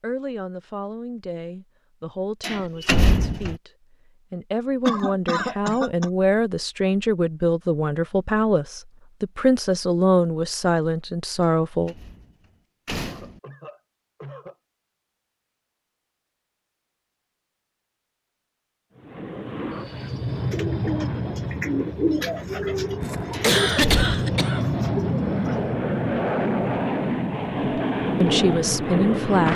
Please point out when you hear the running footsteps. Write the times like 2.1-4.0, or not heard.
not heard.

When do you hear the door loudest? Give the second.
3 s.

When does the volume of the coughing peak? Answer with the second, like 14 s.
24 s.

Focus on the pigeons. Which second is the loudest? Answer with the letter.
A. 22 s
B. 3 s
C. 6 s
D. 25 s
A.